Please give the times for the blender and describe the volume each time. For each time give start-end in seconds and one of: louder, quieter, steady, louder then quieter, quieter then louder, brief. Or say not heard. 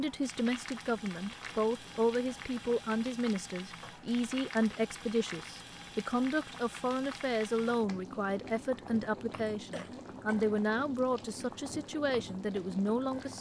not heard.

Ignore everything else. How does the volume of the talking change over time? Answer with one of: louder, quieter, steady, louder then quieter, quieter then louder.
steady.